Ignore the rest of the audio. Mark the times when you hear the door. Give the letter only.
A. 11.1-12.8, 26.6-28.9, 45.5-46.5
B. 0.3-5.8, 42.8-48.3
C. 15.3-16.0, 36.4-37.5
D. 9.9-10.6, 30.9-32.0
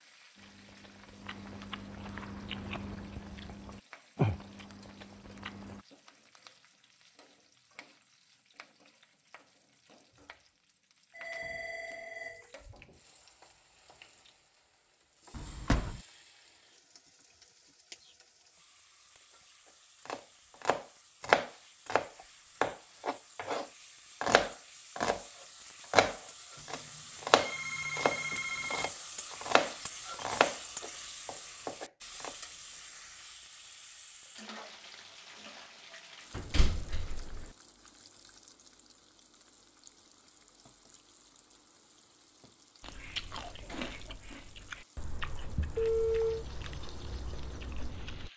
C.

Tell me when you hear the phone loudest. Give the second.
46 s.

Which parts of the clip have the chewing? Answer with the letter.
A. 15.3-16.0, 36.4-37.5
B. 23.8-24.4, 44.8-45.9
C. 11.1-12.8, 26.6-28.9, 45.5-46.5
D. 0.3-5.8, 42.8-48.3
D.